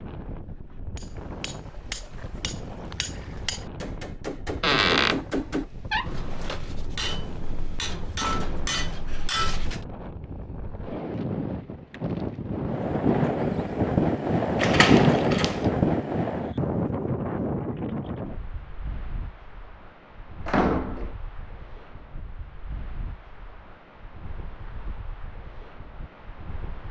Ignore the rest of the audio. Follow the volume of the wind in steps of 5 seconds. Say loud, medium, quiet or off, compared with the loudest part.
quiet, quiet, loud, loud, quiet, quiet.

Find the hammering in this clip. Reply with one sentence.
You can hear the hammering from 0.9 to 9.8 s.